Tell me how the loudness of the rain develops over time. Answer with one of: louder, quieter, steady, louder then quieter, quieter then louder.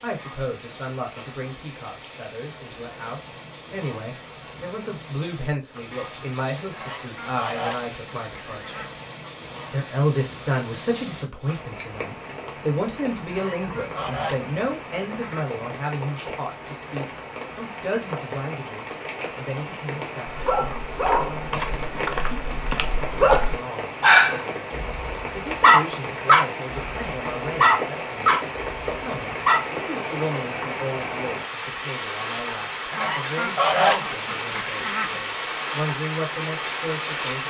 louder.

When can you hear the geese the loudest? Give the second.
34 s.